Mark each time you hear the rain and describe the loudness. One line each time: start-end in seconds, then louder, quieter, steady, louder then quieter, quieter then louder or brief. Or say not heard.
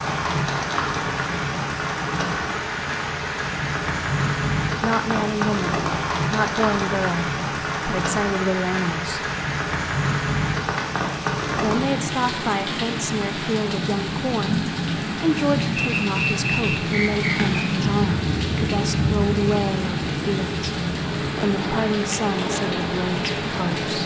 0.0-24.0 steady.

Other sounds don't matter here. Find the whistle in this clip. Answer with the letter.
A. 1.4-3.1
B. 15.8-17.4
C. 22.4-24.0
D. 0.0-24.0
B.